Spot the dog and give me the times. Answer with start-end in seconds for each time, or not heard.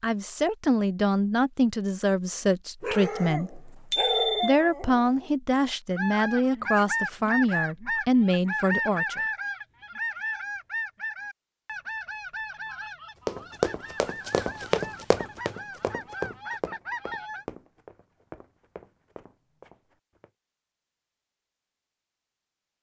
2.8-5.3.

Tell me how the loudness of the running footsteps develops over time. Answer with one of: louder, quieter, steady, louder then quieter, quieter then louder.
quieter.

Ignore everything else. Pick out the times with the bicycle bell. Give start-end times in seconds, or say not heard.
3.9-4.5.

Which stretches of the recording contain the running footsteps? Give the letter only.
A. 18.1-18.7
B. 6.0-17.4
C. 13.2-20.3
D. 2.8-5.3
C.